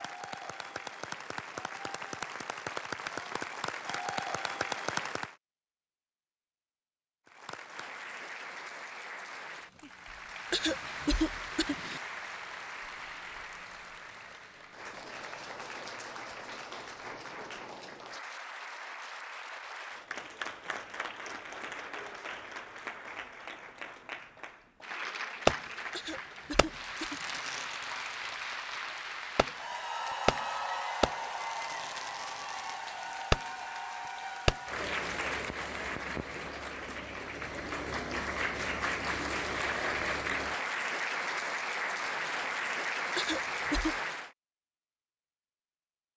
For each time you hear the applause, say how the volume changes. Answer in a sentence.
You can hear the applause from 0.0 to 5.3 s, getting louder; and from 7.2 to 44.3 s, getting louder.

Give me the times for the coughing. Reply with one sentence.
The coughing can be heard from 10.5 to 12.0 s, from 25.9 to 27.4 s and from 43.1 to 44.0 s.